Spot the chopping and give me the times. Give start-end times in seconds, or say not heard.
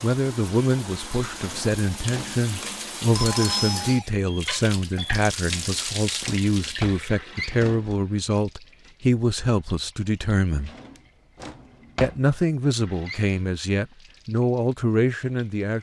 not heard.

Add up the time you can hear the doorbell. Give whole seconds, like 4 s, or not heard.
2 s.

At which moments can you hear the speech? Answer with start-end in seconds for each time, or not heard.
0.0-10.7, 12.0-15.7.